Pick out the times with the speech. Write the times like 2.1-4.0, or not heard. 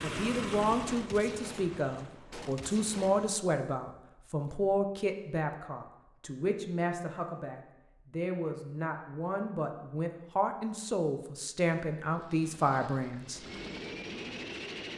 0.0-13.4.